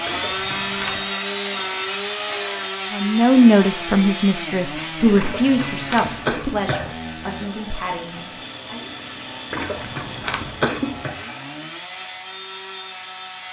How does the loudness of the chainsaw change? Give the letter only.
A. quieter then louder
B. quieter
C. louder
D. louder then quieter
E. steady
B.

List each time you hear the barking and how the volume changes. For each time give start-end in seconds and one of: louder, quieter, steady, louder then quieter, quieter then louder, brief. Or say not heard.
not heard.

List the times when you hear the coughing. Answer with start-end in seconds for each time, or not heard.
0.1-1.1, 5.2-7.0, 9.5-11.2.